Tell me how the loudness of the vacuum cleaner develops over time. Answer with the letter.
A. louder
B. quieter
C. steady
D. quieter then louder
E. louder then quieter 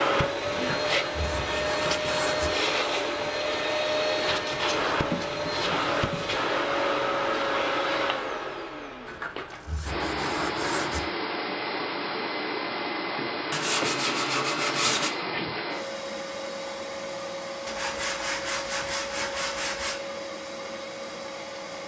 B.